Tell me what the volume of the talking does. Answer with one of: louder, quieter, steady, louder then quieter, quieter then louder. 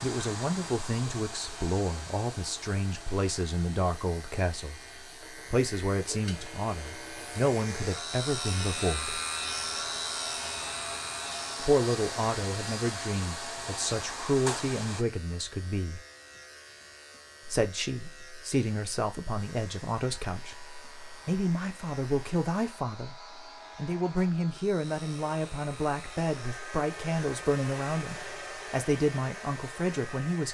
steady.